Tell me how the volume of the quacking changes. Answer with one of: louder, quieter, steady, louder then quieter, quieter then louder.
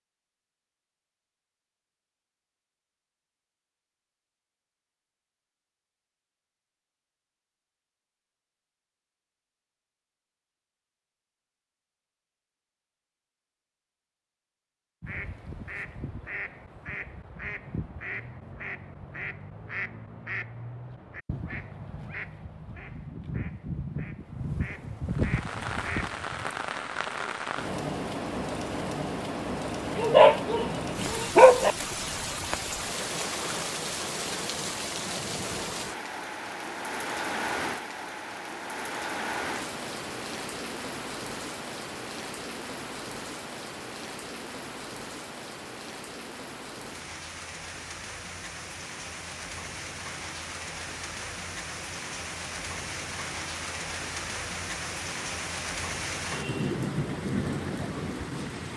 louder.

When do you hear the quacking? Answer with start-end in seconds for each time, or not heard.
15.0-26.1.